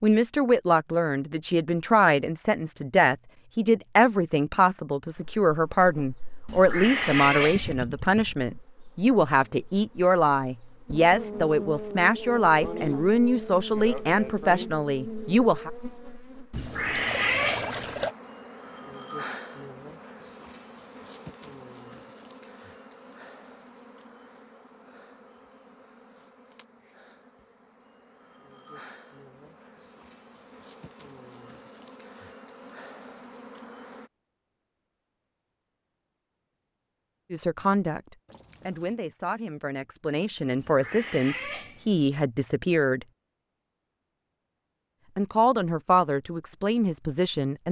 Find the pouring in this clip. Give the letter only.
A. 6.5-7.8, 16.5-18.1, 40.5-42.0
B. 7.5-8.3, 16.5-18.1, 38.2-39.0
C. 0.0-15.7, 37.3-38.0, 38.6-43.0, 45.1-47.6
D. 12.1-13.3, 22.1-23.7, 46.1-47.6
B.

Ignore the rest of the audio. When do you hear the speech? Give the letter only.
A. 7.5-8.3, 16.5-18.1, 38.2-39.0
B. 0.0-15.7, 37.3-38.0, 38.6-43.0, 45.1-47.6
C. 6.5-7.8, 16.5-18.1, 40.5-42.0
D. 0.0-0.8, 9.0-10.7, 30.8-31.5
B.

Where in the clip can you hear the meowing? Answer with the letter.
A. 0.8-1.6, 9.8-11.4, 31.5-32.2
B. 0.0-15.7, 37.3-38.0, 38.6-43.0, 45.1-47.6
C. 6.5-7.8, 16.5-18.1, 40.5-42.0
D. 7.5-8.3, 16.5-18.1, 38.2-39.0
C.